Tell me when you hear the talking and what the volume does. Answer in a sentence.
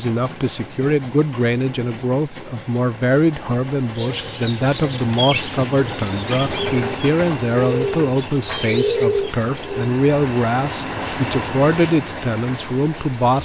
The talking can be heard from 0.0 to 13.4 s, at a steady volume.